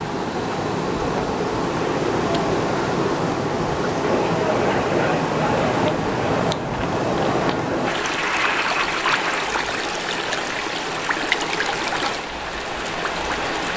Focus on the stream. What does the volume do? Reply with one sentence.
The volume of the stream stays about the same.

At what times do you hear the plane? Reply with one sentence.
You can hear the plane from 4.0 to 9.5 s.